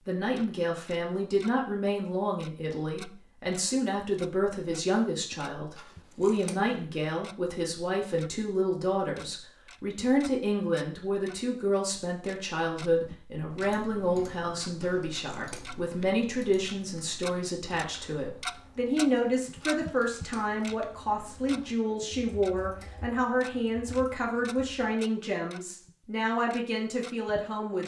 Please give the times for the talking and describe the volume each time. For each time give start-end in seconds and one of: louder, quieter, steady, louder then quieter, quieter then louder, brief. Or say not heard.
0.1-27.8 steady.